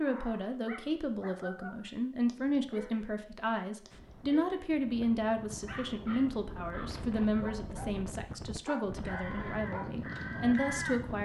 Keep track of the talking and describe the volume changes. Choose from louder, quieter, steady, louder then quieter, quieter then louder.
steady.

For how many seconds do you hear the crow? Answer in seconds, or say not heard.
2 s.